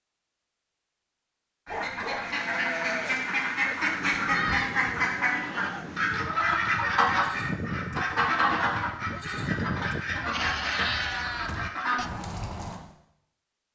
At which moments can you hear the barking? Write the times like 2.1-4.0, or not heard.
1.6-2.4.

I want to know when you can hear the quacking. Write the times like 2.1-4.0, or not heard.
1.6-12.8.